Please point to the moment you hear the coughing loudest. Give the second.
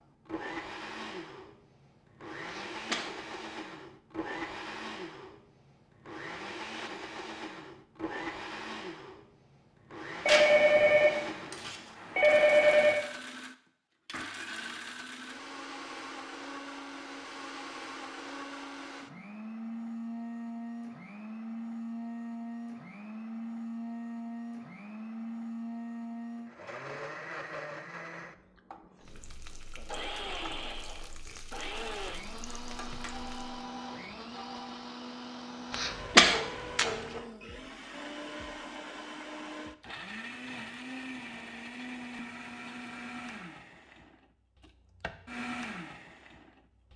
36 s.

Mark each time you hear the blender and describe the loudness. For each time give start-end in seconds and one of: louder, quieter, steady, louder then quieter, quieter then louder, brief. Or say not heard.
0.0-46.9 steady.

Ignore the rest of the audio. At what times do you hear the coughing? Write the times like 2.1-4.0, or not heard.
2.5-3.2, 35.7-37.2.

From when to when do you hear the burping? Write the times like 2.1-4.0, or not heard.
not heard.